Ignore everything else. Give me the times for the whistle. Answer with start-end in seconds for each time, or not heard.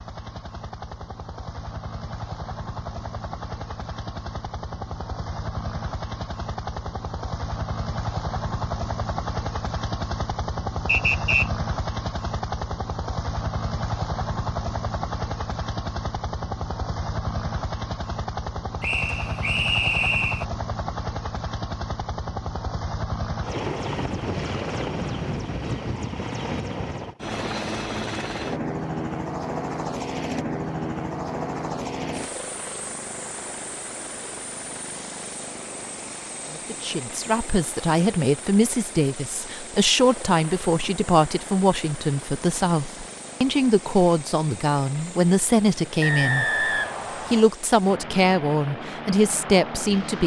10.8-11.5, 18.8-20.4, 46.0-47.5.